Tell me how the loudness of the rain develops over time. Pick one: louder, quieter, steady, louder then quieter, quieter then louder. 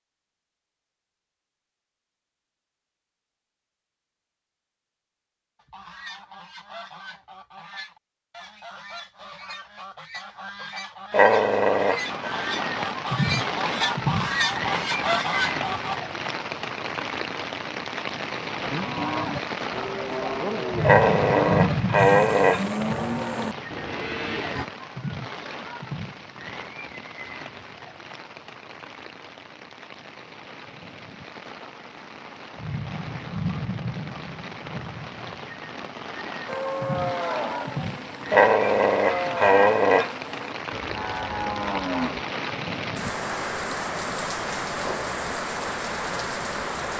quieter then louder.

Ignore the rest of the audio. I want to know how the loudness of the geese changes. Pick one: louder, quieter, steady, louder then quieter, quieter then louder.
louder.